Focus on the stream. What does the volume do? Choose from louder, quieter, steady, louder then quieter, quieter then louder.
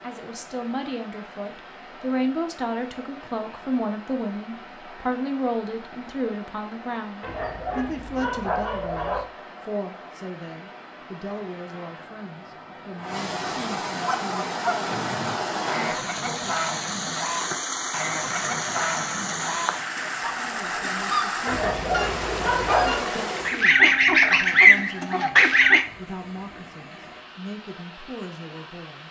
louder then quieter.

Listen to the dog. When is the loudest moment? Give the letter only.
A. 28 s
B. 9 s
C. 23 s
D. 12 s
C.